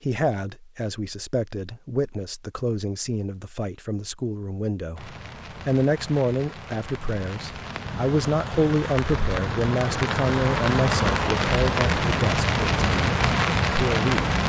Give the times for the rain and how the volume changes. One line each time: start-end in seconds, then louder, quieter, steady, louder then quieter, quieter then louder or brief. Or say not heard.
5.0-14.4 louder.